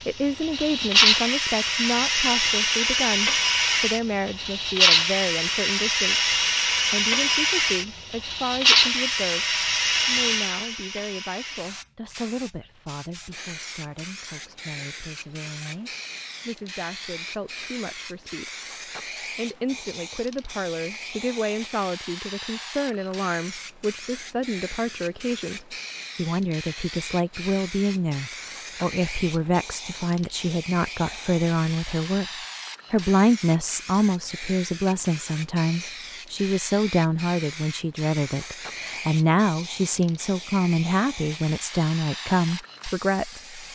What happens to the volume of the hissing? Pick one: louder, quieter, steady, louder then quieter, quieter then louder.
quieter.